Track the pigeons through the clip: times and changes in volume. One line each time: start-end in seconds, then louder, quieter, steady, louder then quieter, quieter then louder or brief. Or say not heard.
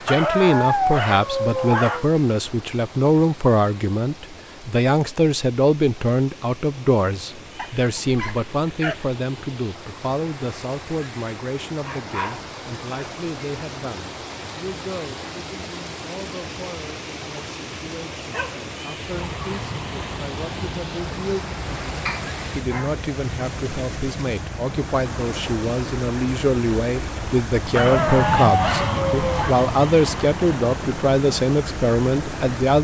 not heard.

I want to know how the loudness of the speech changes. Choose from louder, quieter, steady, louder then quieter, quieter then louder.
quieter then louder.